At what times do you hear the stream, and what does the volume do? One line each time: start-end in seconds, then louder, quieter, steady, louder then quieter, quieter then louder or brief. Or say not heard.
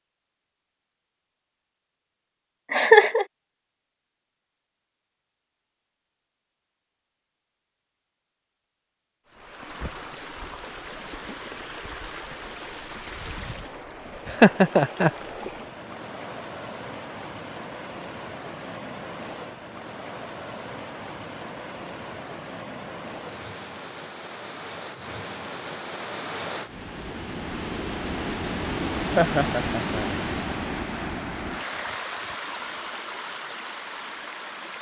9.2-34.7 louder.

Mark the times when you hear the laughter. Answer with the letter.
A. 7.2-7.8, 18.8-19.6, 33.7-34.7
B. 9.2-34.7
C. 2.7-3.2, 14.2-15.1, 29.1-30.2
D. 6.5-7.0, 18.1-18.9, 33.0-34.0
C.